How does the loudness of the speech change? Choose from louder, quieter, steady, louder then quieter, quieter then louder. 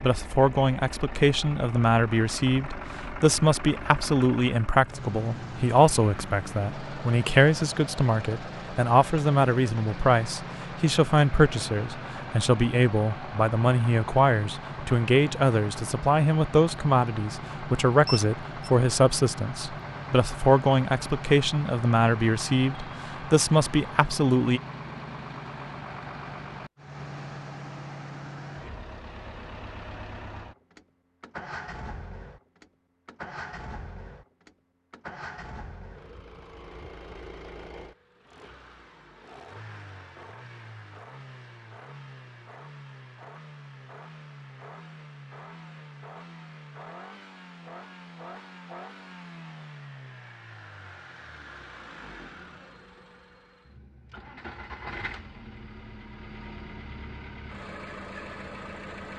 steady.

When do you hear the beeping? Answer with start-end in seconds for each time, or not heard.
18.1-18.7.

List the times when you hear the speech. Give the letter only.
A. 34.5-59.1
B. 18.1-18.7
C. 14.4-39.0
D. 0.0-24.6
D.